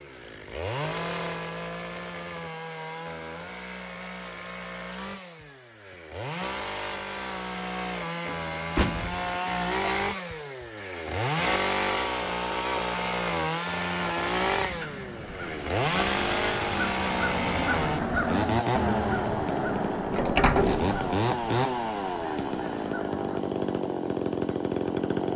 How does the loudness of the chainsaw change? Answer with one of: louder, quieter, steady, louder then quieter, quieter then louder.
louder.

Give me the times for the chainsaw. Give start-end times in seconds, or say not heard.
0.0-25.3.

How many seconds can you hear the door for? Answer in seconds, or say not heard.
2 s.